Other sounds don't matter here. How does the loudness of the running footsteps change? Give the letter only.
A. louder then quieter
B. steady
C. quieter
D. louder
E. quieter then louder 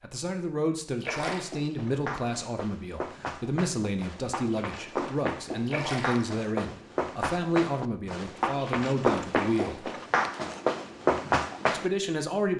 D.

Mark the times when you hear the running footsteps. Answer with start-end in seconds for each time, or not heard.
1.1-11.9.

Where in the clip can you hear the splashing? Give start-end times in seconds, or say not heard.
1.0-1.6, 5.7-6.2, 9.3-9.8.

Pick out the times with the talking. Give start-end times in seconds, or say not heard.
0.0-9.9, 11.7-12.5.